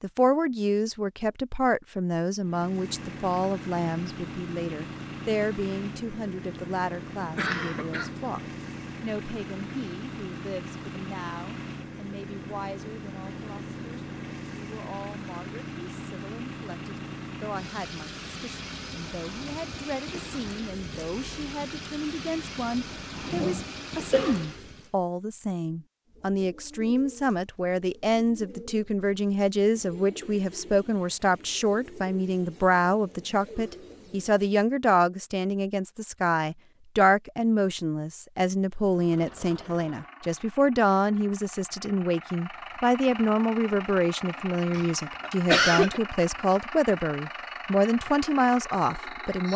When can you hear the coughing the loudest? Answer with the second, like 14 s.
46 s.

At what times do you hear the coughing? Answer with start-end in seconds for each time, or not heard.
7.1-8.1, 23.1-24.4, 44.7-46.0.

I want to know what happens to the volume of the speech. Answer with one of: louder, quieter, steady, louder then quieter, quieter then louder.
quieter then louder.